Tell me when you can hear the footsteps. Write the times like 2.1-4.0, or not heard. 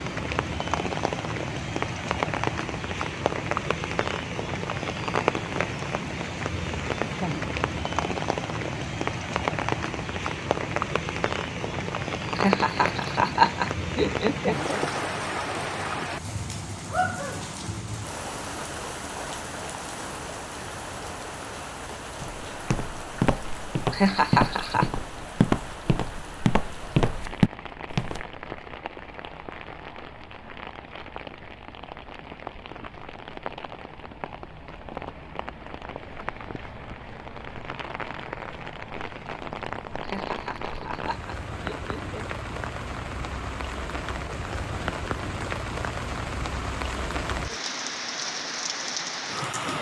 22.2-28.2.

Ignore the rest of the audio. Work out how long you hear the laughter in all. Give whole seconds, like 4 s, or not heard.
6 s.